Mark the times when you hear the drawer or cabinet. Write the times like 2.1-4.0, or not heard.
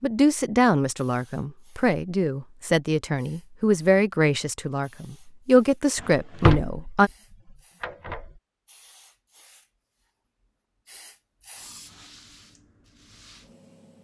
6.0-8.3.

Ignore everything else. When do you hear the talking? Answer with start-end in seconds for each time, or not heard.
0.0-7.1.